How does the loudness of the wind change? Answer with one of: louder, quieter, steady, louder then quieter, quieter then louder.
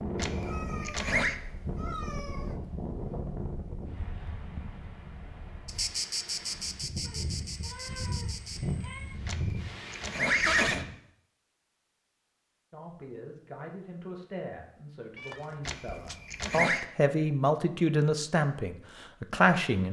quieter then louder.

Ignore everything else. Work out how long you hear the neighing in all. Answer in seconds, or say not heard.
4 s.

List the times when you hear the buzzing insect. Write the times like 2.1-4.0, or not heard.
5.7-8.6.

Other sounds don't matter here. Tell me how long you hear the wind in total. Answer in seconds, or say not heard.
11 s.